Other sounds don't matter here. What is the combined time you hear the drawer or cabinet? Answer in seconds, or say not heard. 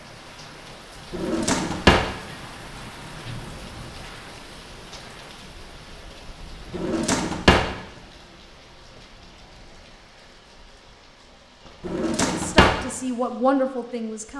3 s.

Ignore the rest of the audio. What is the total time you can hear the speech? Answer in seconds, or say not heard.
2 s.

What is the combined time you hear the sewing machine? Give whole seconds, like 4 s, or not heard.
not heard.